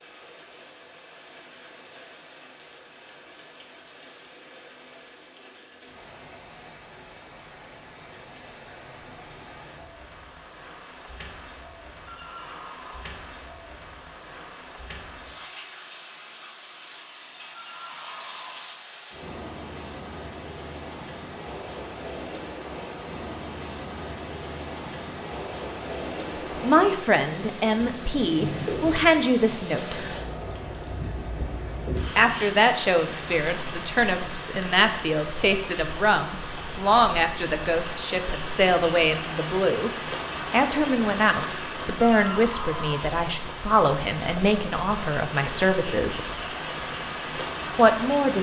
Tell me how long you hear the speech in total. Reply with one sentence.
The speech can be heard for 18 seconds in total.